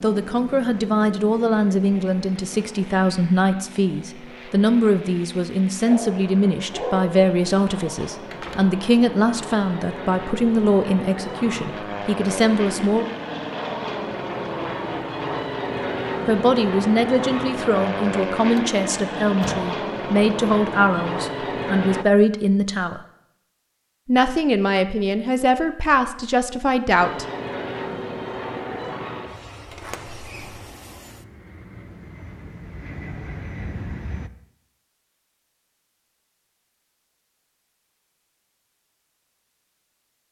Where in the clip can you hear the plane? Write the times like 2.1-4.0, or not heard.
0.0-22.1, 26.9-34.3.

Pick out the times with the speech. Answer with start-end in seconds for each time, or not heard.
0.0-13.1, 16.2-23.0, 24.1-27.2.